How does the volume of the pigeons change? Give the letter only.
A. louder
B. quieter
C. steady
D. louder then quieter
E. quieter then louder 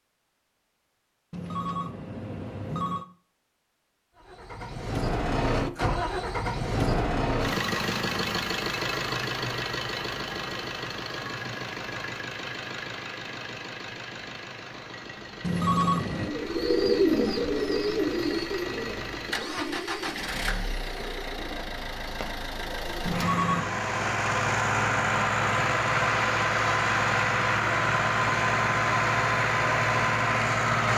B.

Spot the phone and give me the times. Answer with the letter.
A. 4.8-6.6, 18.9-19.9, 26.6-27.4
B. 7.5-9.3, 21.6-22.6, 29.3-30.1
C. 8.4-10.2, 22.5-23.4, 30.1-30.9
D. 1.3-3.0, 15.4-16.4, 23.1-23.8
D.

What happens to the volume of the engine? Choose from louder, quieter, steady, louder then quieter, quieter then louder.
quieter then louder.